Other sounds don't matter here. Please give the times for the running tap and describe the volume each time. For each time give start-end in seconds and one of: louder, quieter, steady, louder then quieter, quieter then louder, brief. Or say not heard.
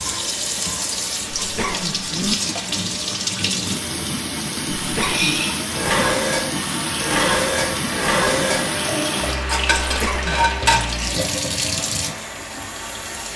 0.0-13.3 steady.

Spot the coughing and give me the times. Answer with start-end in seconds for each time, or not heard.
1.4-2.4, 4.8-5.4, 9.8-10.4.